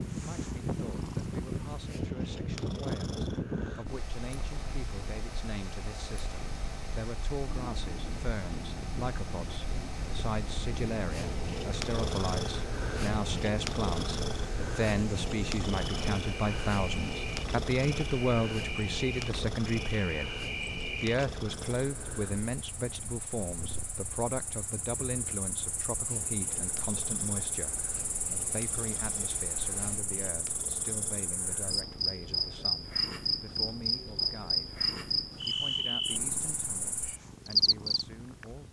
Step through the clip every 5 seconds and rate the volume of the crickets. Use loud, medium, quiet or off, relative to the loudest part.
off, off, off, medium, medium, medium, loud, loud.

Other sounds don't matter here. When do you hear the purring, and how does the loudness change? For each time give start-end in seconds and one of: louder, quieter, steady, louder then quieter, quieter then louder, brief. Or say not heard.
0.0-38.6 louder then quieter.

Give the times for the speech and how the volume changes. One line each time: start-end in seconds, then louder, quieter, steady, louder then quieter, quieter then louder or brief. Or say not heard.
0.1-38.6 louder then quieter.